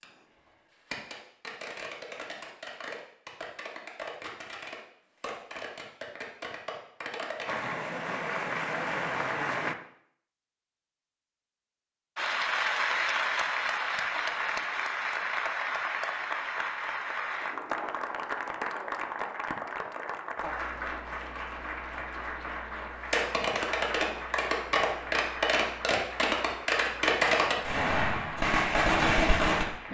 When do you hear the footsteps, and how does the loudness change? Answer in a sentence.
You can't hear the footsteps here.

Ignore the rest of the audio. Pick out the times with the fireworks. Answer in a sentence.
You can hear the fireworks from 0.0 to 7.7 s and from 23.1 to 29.8 s.